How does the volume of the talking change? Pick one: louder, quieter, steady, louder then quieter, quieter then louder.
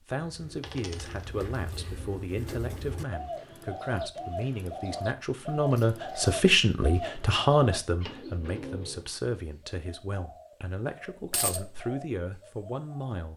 louder then quieter.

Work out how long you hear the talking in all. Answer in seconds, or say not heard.
13 s.